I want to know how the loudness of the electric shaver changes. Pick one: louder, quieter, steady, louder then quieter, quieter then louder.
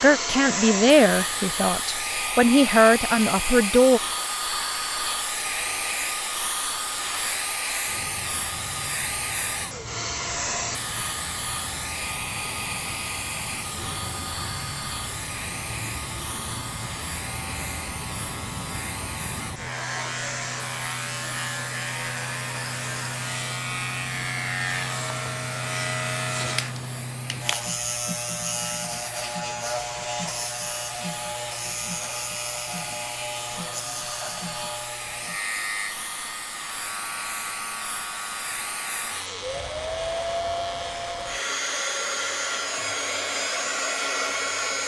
louder then quieter.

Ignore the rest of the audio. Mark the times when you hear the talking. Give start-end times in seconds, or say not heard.
0.0-4.0.